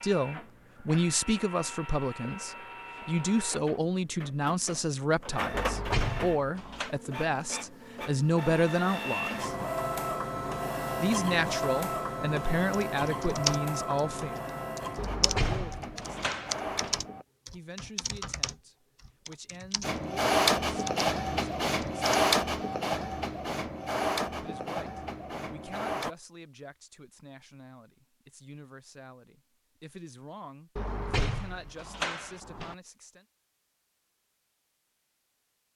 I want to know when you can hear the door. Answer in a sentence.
The door can be heard from 5.5 to 6.9 s, from 14.9 to 17.0 s and from 30.8 to 32.8 s.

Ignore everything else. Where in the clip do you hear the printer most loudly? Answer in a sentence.
The loudest moment of the printer is at 21 seconds.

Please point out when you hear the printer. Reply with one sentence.
The printer can be heard from 0.0 to 17.2 s and from 19.8 to 26.1 s.